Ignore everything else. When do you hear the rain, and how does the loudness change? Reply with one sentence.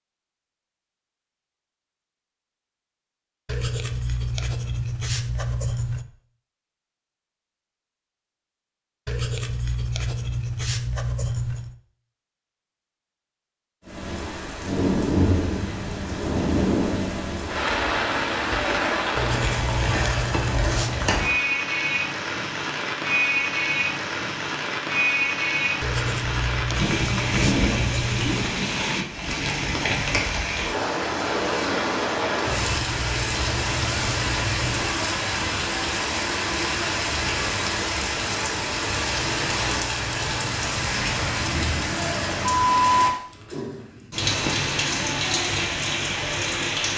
The rain can be heard from 13.8 to 46.9 s, at a steady volume.